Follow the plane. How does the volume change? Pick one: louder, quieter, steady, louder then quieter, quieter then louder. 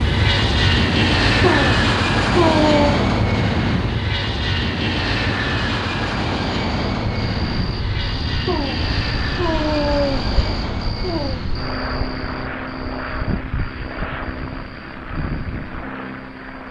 quieter.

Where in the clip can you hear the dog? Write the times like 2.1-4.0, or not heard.
1.4-3.0, 8.4-11.4.